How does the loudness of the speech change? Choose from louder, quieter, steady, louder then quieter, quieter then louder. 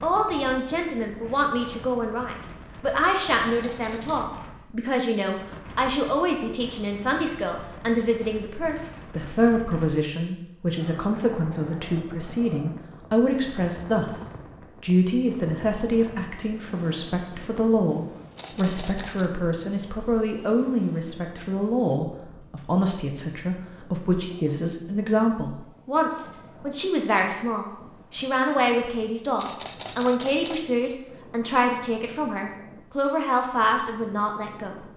steady.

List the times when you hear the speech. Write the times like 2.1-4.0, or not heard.
0.0-34.9.